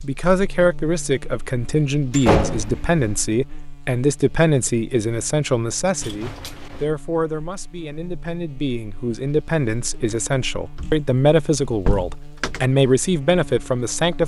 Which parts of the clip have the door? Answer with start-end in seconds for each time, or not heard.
2.1-3.1, 6.0-6.8, 10.8-12.7.